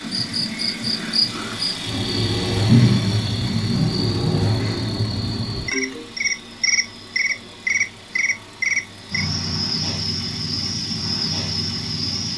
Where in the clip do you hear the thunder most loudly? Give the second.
3 s.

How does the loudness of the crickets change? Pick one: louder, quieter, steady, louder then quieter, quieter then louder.
steady.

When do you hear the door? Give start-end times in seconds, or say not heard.
not heard.